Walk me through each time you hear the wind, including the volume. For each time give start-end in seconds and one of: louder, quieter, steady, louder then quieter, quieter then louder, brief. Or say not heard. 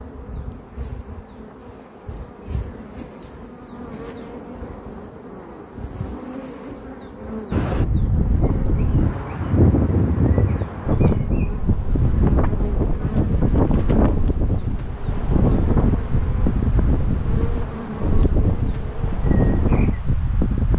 7.5-20.7 steady.